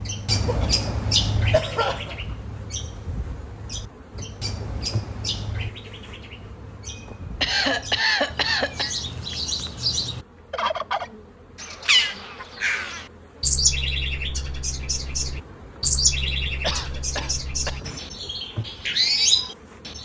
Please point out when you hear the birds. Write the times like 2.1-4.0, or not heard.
0.0-20.0.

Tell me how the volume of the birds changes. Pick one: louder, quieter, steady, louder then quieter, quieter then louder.
quieter then louder.